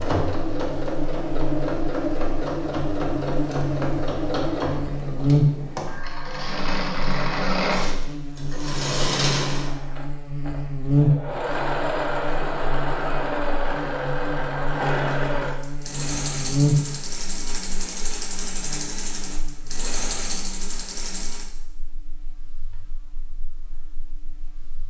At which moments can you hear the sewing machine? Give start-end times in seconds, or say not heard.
0.0-21.5.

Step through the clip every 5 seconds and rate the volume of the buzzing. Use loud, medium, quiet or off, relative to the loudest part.
medium, loud, loud, loud, quiet.